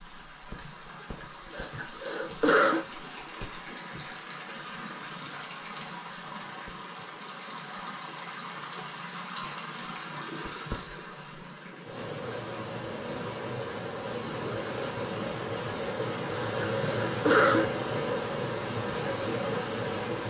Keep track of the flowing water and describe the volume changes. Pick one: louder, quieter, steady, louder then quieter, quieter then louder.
louder.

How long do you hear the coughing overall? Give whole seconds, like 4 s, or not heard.
3 s.